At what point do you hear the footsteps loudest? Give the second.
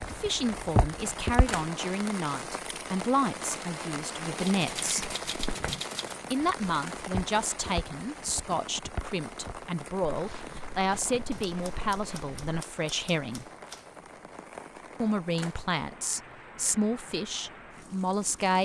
1 s.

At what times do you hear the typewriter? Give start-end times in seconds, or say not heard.
4.3-6.2, 11.3-13.9.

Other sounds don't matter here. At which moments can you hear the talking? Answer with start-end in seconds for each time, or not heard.
0.0-5.0, 6.3-13.4, 15.0-18.5.